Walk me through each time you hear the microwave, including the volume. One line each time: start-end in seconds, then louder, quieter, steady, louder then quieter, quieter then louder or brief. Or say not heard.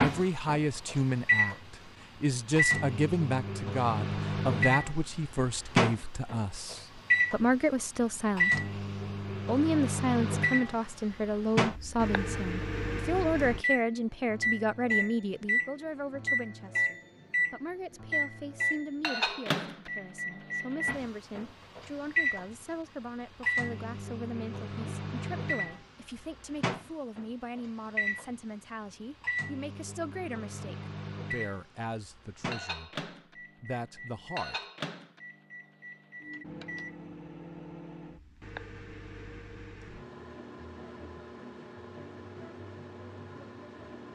0.0-44.1 quieter.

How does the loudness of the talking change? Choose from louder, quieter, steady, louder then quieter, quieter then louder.
quieter.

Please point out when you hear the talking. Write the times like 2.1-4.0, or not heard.
0.0-8.8, 9.4-34.5.